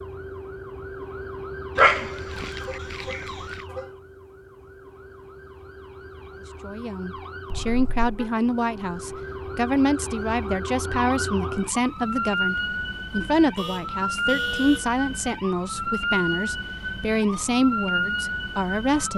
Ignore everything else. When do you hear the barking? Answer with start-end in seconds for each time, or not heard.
1.8-3.6.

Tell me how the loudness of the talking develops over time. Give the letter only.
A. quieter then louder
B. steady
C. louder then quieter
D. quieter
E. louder
B.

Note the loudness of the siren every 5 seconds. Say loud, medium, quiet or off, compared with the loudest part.
medium, medium, loud, loud.